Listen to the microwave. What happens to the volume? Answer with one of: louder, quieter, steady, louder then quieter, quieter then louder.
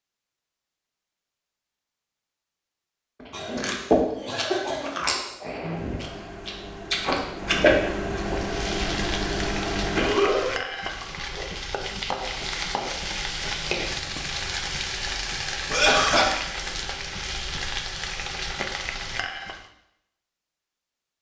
louder.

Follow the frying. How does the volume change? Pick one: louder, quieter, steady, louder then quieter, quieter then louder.
steady.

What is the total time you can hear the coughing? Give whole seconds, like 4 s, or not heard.
3 s.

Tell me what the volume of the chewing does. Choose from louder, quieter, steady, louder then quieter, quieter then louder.
quieter then louder.